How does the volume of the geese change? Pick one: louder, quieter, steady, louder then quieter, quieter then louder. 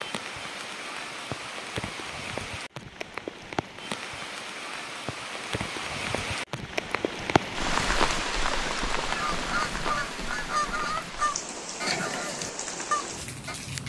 louder.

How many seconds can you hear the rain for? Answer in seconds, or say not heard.
14 s.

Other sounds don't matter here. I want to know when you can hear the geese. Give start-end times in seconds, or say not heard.
7.7-13.6.